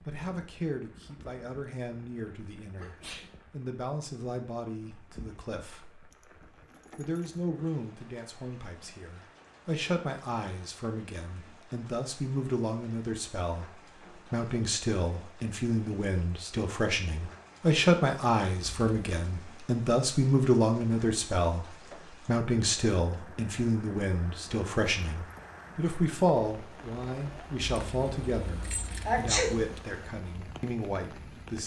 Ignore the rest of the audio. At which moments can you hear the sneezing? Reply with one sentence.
The sneezing can be heard from 2.8 to 3.3 s and from 29.1 to 29.5 s.